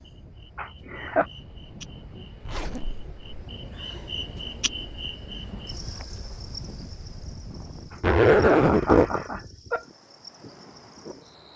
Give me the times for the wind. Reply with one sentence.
You can hear the wind from 0.0 to 11.5 s.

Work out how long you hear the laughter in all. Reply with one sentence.
You can hear the laughter for 3 seconds altogether.